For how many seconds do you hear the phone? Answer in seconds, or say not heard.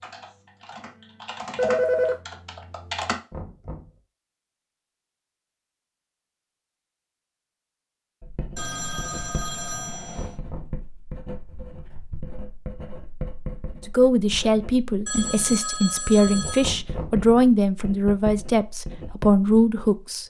4 s.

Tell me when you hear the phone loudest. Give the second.
2 s.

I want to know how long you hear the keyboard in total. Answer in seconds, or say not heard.
3 s.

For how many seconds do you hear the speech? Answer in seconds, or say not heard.
6 s.